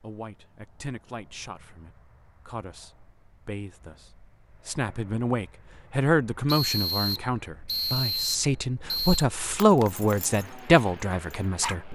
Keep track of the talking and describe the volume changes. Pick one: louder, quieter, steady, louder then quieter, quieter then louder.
louder.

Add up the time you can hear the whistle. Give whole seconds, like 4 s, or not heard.
3 s.